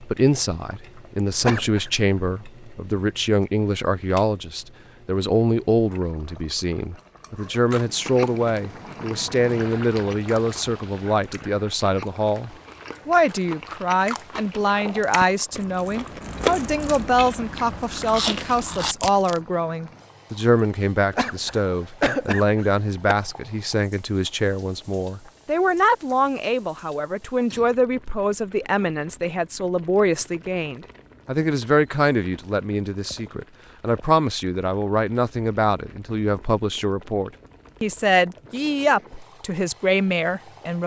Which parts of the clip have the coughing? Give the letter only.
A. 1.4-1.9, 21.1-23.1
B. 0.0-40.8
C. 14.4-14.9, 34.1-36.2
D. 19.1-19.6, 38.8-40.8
A.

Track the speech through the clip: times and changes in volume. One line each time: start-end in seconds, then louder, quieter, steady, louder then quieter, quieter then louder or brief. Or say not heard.
0.0-40.8 steady.